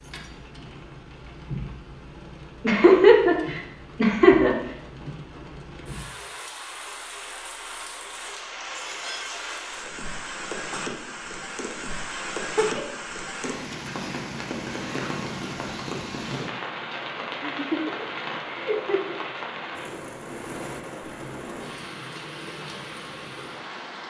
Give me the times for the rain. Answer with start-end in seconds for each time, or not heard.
0.0-24.0.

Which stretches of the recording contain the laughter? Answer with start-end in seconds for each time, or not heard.
2.6-4.5, 12.3-12.8, 17.4-19.2.